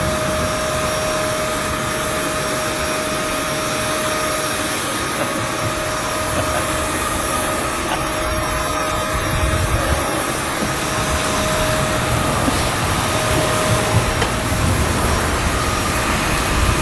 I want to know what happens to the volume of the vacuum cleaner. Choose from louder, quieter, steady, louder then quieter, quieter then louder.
steady.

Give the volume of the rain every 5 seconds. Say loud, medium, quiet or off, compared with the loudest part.
medium, medium, loud, loud.